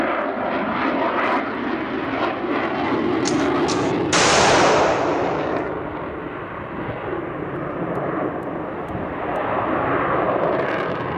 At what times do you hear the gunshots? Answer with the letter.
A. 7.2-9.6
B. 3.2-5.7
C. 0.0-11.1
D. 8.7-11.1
B.